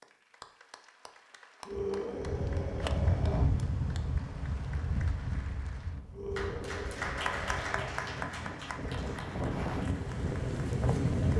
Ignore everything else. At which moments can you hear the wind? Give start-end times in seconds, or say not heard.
2.1-11.3.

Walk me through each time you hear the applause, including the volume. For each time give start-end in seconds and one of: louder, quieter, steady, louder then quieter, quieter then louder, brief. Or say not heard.
0.0-11.3 louder then quieter.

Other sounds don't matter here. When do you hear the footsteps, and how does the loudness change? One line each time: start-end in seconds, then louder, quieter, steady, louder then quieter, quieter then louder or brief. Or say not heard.
not heard.